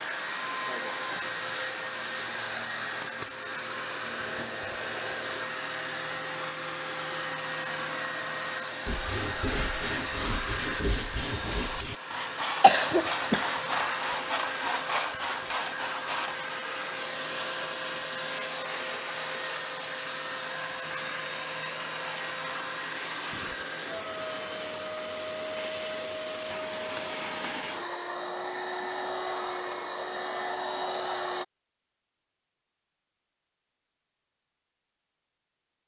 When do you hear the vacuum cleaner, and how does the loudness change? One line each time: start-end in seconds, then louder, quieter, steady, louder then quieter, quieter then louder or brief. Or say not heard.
0.0-31.4 steady.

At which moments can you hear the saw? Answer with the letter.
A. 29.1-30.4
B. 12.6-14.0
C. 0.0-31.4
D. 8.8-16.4
D.